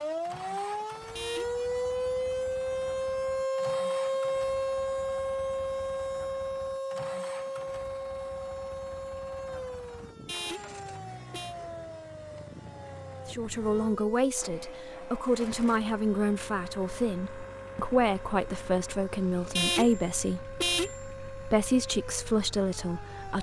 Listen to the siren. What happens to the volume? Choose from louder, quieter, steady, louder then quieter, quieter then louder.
quieter.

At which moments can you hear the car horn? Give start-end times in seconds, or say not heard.
1.1-1.6, 10.2-11.6, 19.6-21.0.